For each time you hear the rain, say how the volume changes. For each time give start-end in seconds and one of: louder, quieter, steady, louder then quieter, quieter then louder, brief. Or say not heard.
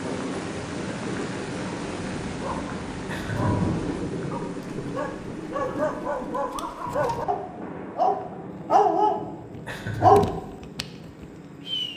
0.0-11.9 quieter.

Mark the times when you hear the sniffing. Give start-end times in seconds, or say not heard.
not heard.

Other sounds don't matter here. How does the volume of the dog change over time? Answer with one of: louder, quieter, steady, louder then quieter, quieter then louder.
louder.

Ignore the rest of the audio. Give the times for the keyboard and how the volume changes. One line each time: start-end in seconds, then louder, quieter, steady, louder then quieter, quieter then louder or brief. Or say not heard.
not heard.